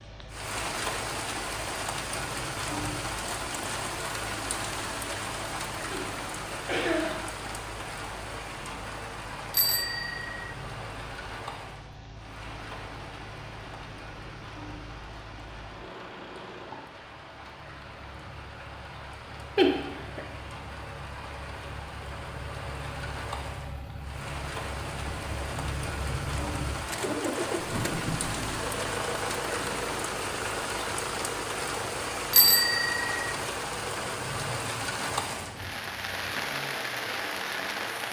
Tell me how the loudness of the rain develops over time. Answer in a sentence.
The volume of the rain goes down, then up.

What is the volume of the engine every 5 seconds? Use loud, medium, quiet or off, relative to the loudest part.
quiet, quiet, quiet, quiet, medium, loud, loud, medium.